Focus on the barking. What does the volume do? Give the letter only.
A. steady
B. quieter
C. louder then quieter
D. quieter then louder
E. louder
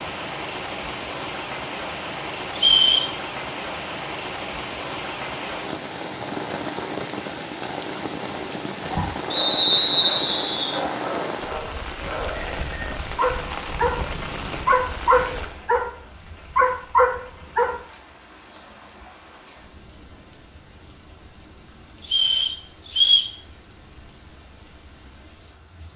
E.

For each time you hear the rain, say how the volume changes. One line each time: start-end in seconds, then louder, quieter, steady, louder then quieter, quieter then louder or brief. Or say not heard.
0.0-25.9 quieter.